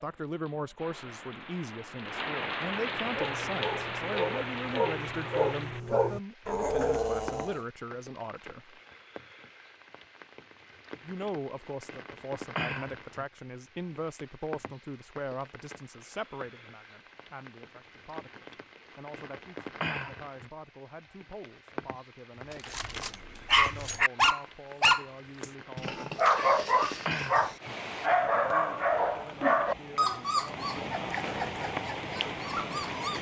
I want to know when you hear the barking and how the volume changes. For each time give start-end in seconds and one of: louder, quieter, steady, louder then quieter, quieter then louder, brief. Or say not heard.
3.0-7.6 louder
22.5-33.1 quieter.